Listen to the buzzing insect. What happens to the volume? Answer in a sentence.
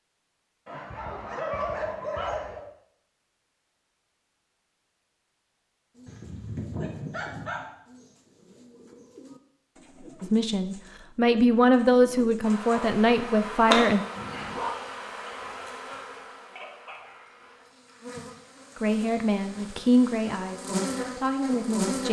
The volume of the buzzing insect goes down, then up.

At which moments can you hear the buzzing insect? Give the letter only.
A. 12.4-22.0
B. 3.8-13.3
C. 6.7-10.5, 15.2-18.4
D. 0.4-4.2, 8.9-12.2
A.